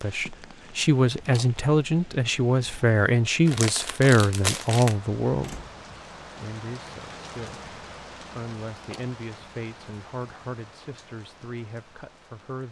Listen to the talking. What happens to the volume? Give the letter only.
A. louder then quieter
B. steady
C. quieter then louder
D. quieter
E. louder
D.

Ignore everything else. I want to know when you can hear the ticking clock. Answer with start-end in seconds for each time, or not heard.
not heard.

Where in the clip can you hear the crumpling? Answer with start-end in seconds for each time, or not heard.
3.5-5.0.